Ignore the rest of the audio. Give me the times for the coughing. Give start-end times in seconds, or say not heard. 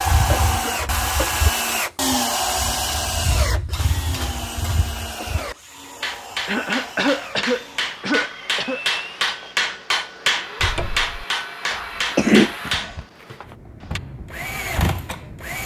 0.3-1.4, 6.5-8.8, 11.7-13.1.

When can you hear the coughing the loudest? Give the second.
12 s.